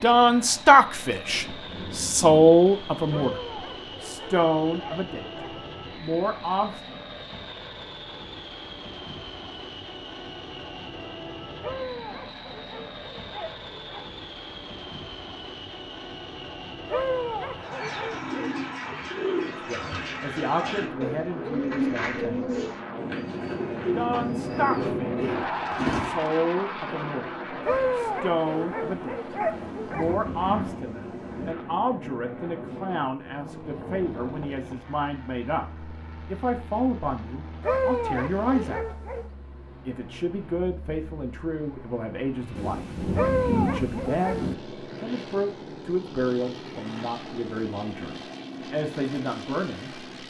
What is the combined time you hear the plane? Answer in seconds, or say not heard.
50 s.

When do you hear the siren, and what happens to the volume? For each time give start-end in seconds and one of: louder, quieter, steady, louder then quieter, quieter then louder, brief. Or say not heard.
not heard.